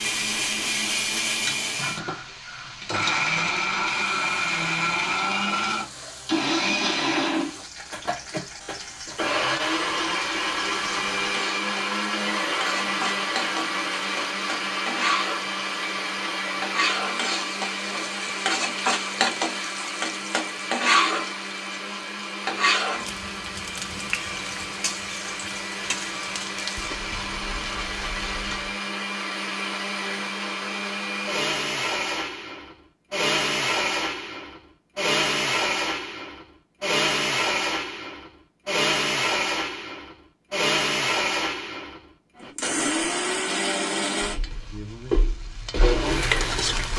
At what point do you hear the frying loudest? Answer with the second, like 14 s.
21 s.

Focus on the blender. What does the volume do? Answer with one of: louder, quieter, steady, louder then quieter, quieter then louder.
quieter then louder.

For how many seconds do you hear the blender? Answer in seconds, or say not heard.
47 s.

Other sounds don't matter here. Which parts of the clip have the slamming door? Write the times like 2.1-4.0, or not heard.
not heard.